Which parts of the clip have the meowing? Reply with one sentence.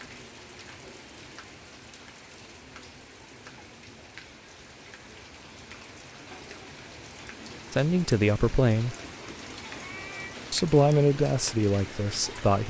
The meowing can be heard from 9.7 to 10.4 s.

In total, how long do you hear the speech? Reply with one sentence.
The speech can be heard for 3 seconds in total.